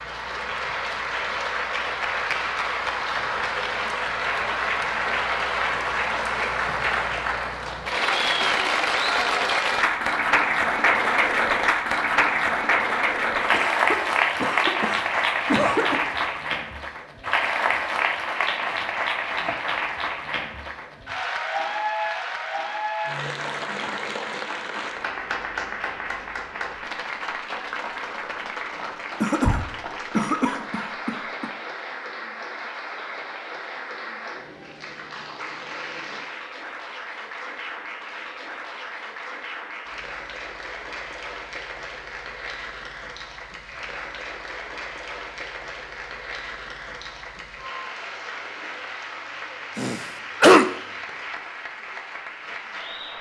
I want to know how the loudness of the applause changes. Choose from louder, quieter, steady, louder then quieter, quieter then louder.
quieter.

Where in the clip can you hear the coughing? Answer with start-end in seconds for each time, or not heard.
13.5-16.0, 29.2-31.5, 49.8-50.6.